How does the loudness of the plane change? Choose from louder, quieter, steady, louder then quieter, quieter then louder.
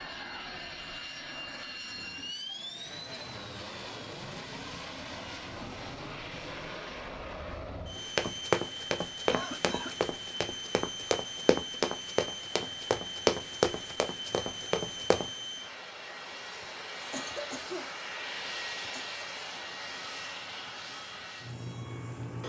steady.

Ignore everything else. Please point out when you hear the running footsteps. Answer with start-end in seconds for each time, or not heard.
8.0-15.3.